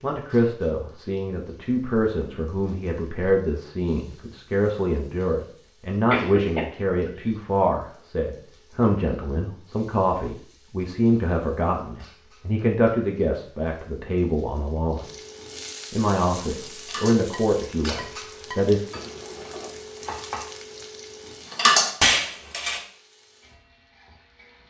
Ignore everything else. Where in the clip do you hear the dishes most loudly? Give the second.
22 s.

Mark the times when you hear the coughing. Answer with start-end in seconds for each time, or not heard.
6.1-7.3.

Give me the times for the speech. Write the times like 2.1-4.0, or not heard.
0.0-15.1, 15.9-18.8.